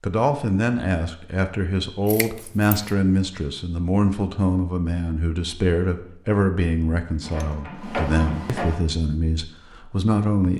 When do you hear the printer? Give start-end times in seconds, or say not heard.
7.2-8.8.